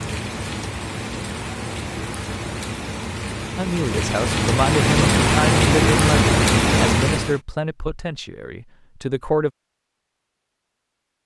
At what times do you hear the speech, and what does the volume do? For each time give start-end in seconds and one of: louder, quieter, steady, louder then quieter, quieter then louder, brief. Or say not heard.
3.5-9.5 quieter.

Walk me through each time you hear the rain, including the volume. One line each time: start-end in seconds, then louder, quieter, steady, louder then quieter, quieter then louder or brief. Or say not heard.
0.0-7.4 louder.